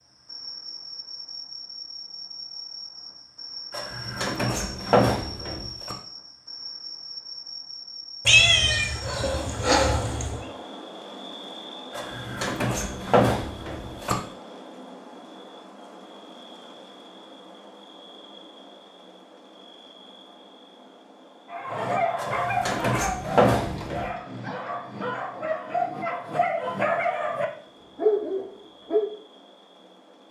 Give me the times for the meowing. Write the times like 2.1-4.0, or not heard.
8.2-10.4.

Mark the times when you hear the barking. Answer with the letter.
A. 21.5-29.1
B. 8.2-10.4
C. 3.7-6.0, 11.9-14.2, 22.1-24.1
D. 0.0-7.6
A.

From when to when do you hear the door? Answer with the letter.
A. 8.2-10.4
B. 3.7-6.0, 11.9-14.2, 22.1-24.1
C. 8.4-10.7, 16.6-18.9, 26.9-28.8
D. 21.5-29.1
B.